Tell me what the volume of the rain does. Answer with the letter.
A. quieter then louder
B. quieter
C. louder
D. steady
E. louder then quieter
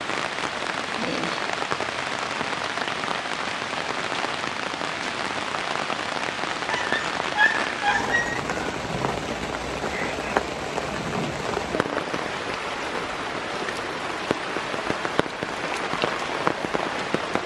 D.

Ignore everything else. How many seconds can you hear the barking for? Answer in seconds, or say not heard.
2 s.